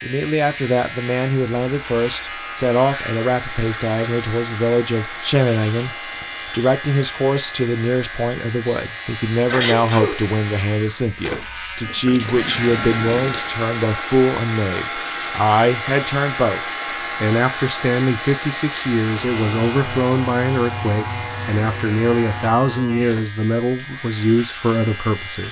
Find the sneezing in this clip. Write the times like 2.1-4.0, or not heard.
9.3-10.2.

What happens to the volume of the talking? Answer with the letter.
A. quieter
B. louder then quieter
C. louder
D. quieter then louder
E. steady
E.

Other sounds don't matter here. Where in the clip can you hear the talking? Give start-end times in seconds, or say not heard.
0.0-25.4.